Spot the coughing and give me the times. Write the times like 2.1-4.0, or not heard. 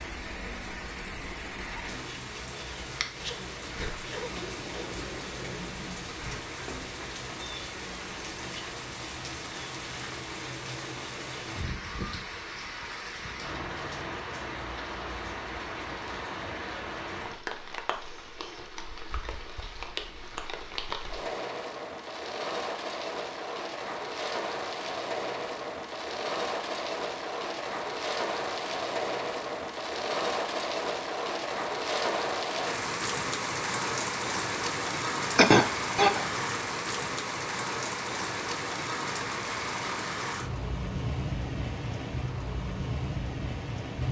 3.0-5.0, 35.4-36.2.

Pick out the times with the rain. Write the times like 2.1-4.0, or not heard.
0.0-44.0.